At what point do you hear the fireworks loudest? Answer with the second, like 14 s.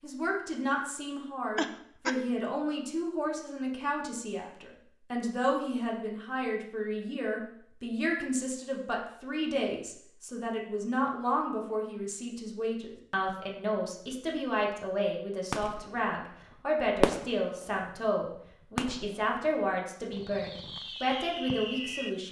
17 s.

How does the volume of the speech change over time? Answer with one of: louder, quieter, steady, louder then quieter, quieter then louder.
steady.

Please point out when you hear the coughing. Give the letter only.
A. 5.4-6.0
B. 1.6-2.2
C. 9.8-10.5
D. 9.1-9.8
B.